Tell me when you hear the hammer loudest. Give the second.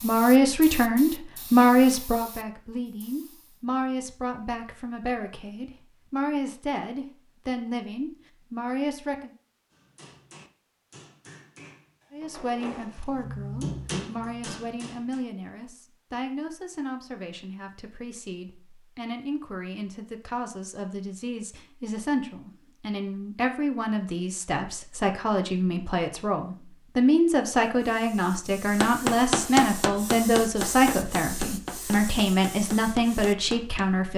29 s.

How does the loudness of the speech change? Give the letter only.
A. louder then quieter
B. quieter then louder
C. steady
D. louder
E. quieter
B.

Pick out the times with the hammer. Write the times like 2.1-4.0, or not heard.
9.7-15.2, 28.8-33.9.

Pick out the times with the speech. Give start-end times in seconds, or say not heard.
0.0-9.3, 12.1-34.1.